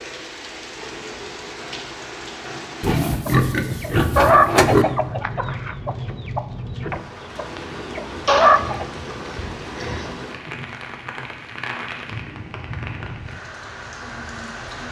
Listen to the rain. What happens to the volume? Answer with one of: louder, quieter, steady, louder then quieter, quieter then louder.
steady.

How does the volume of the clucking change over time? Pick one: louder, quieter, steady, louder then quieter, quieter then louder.
quieter then louder.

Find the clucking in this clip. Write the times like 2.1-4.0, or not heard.
3.2-8.8.